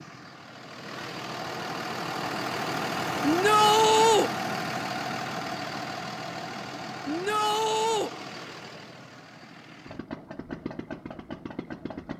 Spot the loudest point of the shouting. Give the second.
4 s.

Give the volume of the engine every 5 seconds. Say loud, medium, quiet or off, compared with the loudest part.
loud, medium, medium.